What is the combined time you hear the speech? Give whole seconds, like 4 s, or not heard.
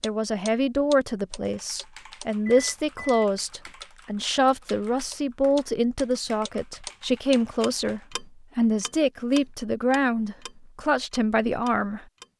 12 s.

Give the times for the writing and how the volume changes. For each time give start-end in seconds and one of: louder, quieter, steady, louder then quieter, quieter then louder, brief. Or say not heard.
not heard.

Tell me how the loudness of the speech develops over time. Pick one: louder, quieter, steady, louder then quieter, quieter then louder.
steady.